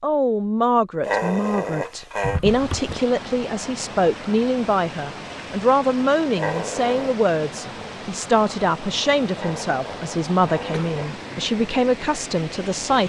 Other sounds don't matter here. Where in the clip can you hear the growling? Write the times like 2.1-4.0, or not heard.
1.1-2.4, 6.3-7.2, 9.3-11.2.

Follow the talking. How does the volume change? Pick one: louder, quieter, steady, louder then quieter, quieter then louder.
steady.